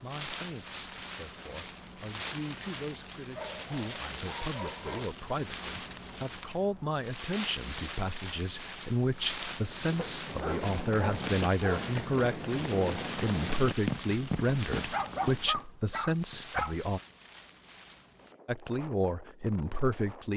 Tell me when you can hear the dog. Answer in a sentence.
The dog can be heard from 3.4 to 5.1 s, from 9.9 to 11.9 s and from 14.9 to 16.8 s.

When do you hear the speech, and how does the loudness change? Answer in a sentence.
You can hear the speech from 0.0 to 17.0 s, getting louder; and briefly from 18.4 to 20.3 s.